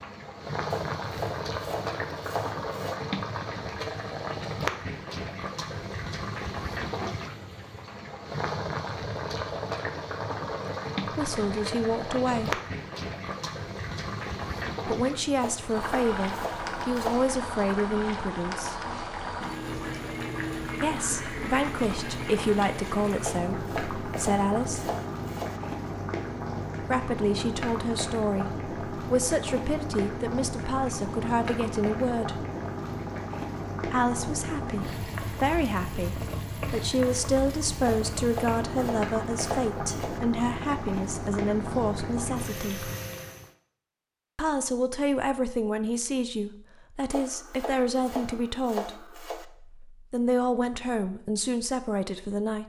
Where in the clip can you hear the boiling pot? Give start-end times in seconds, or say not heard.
0.0-43.5.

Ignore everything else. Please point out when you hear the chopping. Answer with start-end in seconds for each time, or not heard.
0.7-3.0, 15.4-17.2, 23.2-25.6, 37.9-40.2, 47.1-49.5.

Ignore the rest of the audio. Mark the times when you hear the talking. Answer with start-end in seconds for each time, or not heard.
11.2-12.6, 14.8-18.8, 20.8-24.9, 26.8-32.5, 33.9-42.9, 44.4-52.6.